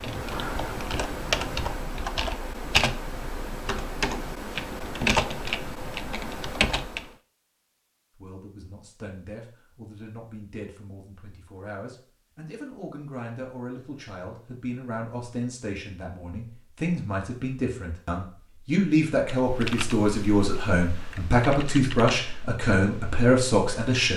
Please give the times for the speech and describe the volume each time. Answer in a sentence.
You can hear the speech from 8.2 to 24.1 s, getting louder.